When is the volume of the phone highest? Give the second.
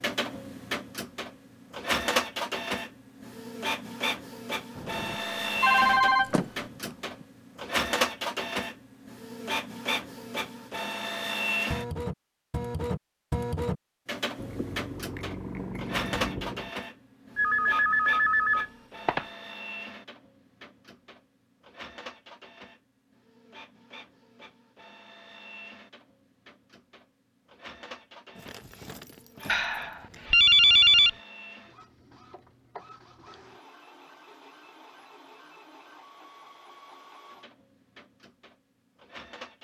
31 s.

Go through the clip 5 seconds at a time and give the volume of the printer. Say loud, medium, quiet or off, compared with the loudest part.
loud, loud, loud, medium, quiet, quiet, quiet, quiet.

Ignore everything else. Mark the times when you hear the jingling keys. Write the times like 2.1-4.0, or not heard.
6.2-7.2, 14.3-16.8, 28.4-30.2.